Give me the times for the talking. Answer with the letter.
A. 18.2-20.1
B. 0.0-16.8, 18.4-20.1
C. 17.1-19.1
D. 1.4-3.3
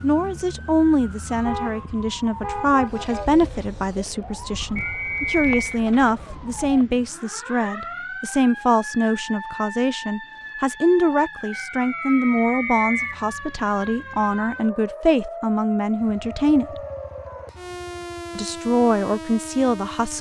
B.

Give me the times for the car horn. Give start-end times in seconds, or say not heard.
1.4-3.3.